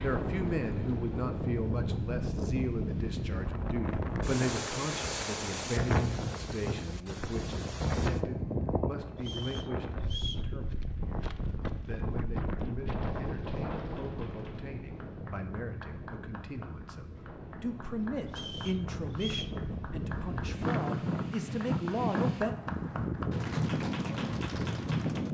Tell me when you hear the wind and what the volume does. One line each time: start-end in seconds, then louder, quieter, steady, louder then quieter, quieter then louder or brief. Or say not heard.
0.0-25.2 quieter then louder.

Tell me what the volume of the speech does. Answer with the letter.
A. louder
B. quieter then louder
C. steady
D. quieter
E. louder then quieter
B.